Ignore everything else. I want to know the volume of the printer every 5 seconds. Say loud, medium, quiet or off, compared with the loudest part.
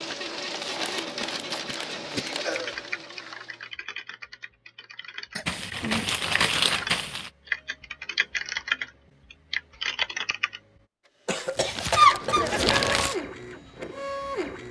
loud, off, loud.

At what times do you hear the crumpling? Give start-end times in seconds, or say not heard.
0.5-2.6, 5.5-7.3, 11.6-13.2.